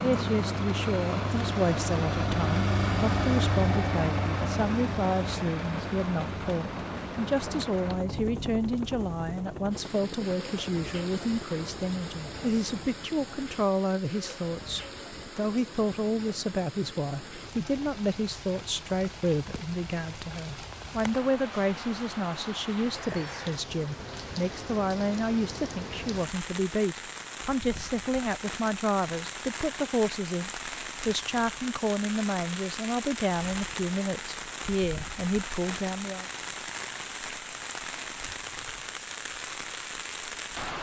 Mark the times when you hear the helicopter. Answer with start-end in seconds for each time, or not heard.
0.0-12.9.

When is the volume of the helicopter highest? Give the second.
3 s.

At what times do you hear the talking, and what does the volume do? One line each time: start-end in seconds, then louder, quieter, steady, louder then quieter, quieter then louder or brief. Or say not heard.
0.0-36.2 steady.